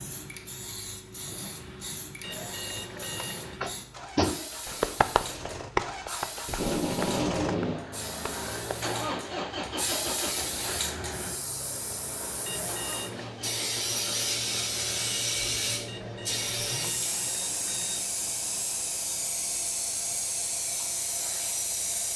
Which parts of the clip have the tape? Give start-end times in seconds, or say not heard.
6.5-7.8.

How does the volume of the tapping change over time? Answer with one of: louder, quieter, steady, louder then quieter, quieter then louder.
quieter.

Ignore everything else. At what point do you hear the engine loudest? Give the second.
9 s.